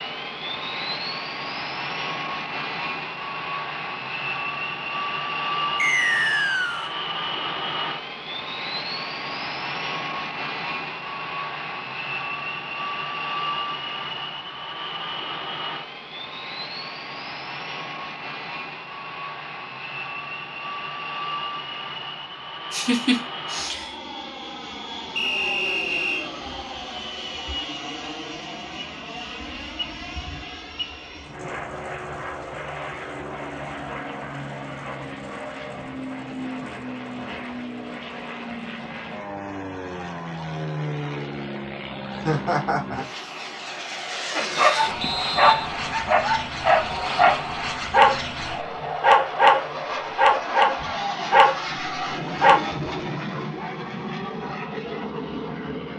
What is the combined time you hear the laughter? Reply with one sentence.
You can hear the laughter for 2 seconds altogether.